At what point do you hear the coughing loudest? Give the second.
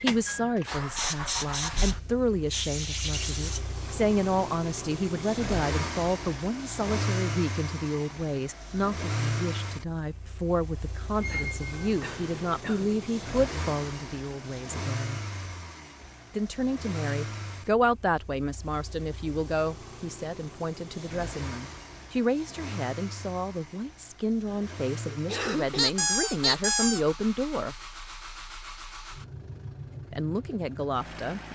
25 s.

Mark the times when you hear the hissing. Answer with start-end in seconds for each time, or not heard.
0.1-3.6.